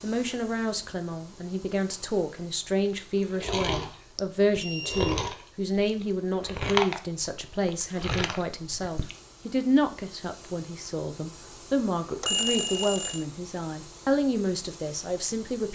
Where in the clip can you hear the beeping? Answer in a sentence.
The beeping can be heard from 4.2 to 5.2 s and from 12.2 to 13.2 s.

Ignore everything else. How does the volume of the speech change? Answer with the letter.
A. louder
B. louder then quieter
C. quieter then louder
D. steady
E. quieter
D.